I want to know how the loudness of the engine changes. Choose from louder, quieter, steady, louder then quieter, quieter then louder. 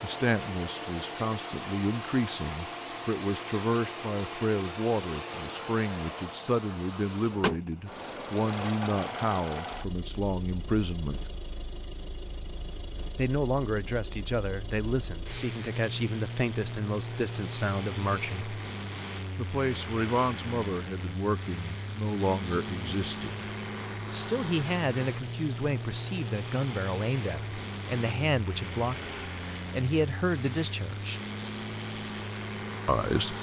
steady.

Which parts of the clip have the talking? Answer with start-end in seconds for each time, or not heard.
0.0-11.2, 13.2-18.6, 19.4-23.4, 24.1-31.2, 32.9-33.3.